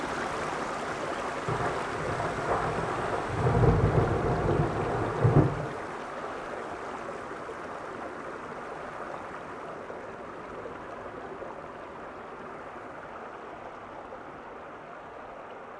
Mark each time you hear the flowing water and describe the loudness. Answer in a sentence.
The flowing water can be heard from 0.0 to 15.7 s, getting quieter.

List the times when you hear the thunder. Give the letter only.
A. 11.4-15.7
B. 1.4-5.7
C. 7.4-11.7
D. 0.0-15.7
B.